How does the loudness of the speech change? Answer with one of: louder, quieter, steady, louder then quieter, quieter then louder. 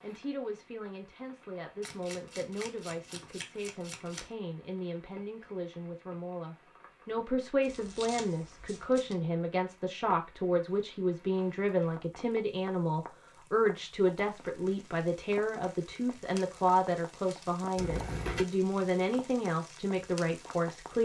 louder.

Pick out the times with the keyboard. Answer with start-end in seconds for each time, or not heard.
not heard.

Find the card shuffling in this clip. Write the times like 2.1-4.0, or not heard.
1.8-4.3, 7.7-9.2, 17.8-18.4.